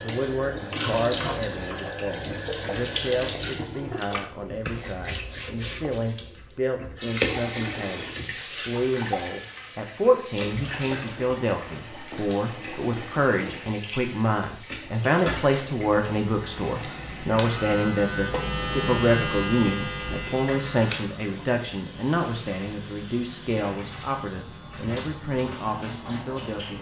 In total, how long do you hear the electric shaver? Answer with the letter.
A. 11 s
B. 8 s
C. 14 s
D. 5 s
A.